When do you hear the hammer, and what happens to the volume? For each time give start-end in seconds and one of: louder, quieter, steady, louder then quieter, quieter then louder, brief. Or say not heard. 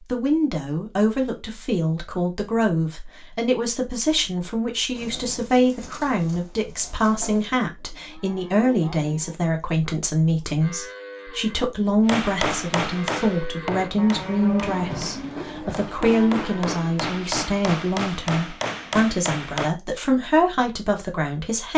12.1-19.7 quieter then louder.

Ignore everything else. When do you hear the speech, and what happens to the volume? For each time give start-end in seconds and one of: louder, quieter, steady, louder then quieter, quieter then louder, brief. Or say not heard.
0.1-21.7 steady.